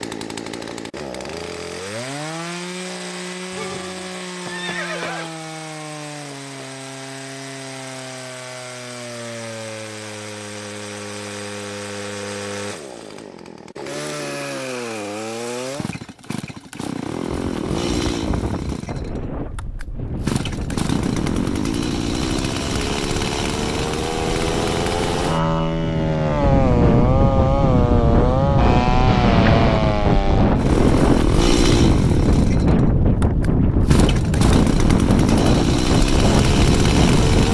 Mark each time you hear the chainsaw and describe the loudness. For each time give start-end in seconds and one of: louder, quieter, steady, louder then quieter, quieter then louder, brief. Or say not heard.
0.0-37.5 louder.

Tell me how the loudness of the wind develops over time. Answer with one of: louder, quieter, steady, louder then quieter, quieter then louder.
louder.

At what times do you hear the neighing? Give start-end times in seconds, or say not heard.
3.5-5.3, 29.1-29.7.